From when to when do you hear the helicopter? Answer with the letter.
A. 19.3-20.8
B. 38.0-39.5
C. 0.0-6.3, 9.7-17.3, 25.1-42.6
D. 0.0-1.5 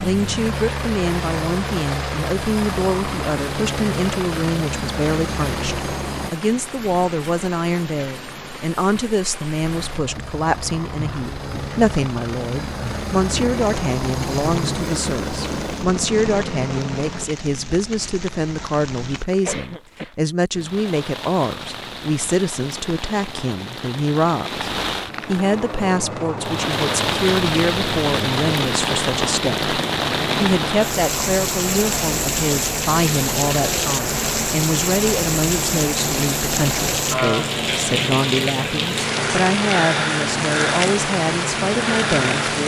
C.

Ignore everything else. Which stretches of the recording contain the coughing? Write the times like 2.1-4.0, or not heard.
19.3-20.8.